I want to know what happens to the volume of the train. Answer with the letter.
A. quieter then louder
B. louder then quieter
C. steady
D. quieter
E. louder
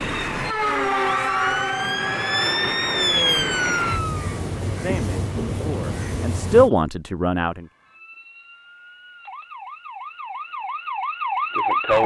D.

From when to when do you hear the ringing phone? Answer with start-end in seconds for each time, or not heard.
not heard.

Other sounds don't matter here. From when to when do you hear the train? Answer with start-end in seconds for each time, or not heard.
0.0-6.7.